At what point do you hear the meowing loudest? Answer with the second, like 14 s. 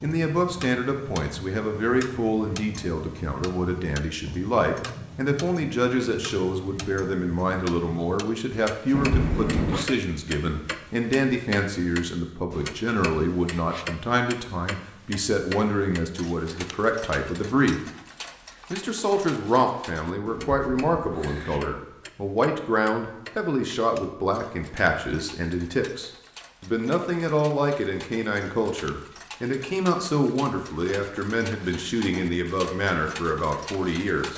9 s.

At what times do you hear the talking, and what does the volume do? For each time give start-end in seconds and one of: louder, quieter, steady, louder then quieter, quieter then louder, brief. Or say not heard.
0.0-17.9 steady
18.7-34.3 steady.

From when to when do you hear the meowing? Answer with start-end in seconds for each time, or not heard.
8.9-9.9, 20.3-21.9.